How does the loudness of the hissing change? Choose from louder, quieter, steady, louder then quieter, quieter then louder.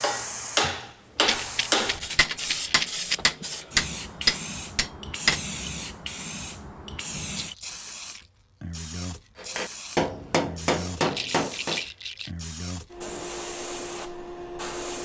steady.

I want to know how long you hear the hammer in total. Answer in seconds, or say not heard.
8 s.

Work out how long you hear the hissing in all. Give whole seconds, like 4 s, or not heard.
15 s.